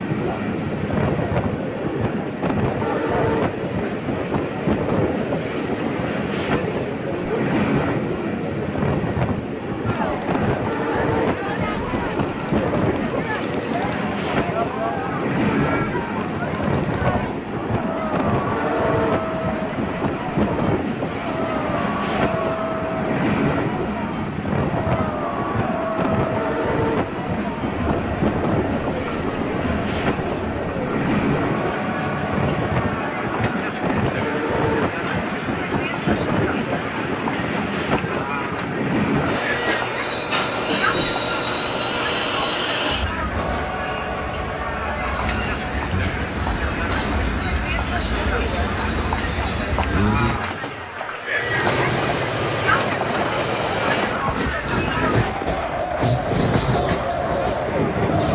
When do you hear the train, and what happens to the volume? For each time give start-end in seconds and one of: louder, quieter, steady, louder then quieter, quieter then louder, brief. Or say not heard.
0.0-58.3 steady.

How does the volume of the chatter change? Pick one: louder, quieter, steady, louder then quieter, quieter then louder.
steady.